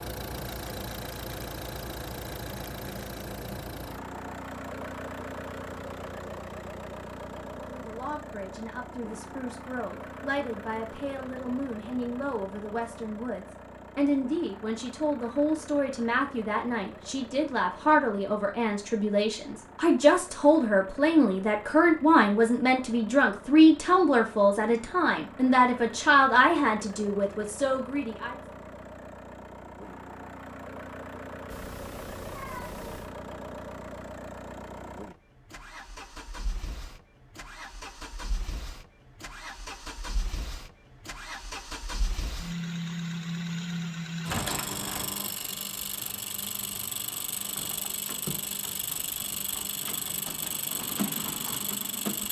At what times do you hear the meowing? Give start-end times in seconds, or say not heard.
31.5-33.1.